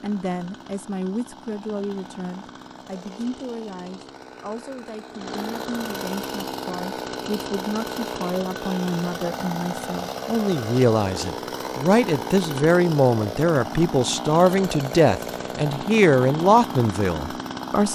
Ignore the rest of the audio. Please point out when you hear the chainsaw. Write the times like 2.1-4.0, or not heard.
0.0-17.9.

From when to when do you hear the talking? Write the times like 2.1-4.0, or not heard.
0.0-17.9.